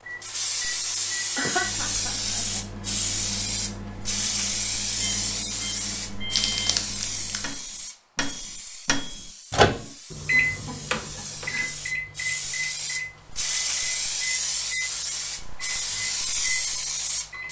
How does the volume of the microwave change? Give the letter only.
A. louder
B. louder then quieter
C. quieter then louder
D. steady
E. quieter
B.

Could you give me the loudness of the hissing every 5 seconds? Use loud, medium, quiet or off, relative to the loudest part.
loud, medium, loud, loud.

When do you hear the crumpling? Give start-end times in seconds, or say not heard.
6.3-7.5.